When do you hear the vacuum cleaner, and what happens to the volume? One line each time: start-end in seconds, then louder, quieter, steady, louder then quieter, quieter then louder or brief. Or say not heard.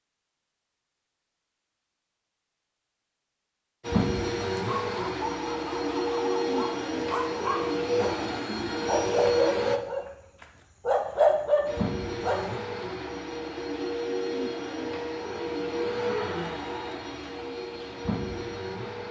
3.8-9.8 steady
11.7-19.0 steady.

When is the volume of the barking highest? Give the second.
11 s.